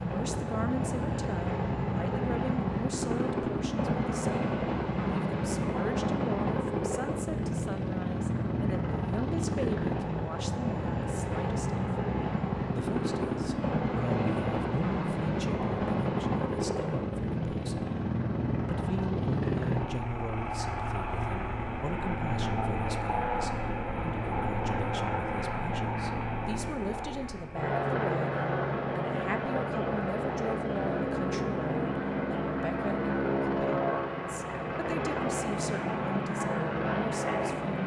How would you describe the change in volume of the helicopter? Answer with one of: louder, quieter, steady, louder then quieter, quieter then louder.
steady.